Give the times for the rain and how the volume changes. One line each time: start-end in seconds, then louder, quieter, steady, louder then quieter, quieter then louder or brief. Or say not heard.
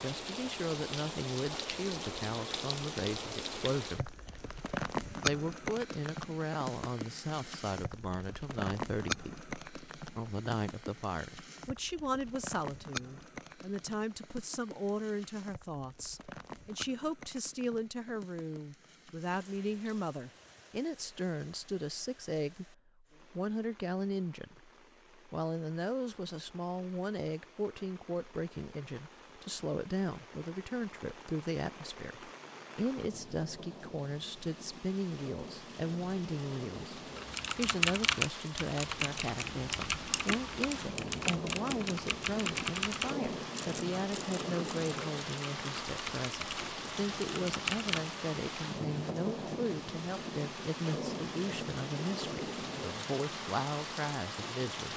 0.0-54.9 quieter then louder.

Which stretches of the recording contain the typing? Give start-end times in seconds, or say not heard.
37.1-48.1.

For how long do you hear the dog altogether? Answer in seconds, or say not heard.
not heard.